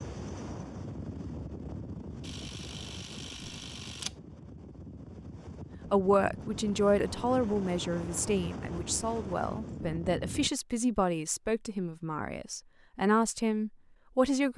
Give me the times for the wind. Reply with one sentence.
You can hear the wind from 0.0 to 10.5 s.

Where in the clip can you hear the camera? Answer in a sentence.
The camera can be heard from 2.2 to 4.2 s.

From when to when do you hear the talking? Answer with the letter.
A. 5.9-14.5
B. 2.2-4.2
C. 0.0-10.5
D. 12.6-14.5
A.